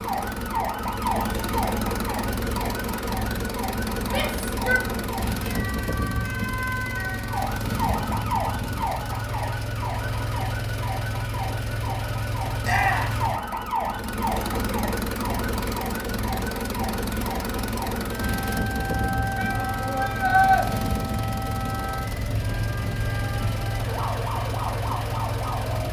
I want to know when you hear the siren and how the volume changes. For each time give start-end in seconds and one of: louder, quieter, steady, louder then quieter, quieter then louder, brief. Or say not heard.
0.0-25.8 steady.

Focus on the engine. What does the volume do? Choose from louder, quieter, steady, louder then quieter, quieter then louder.
steady.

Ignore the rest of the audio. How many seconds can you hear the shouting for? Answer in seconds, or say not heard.
3 s.